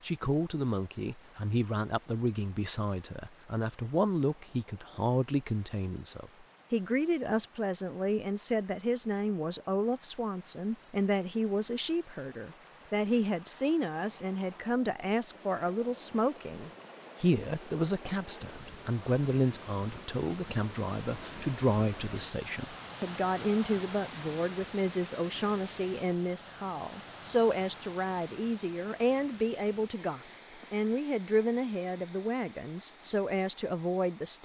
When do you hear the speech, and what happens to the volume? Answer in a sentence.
You can hear the speech from 0.0 to 34.4 s, at a steady volume.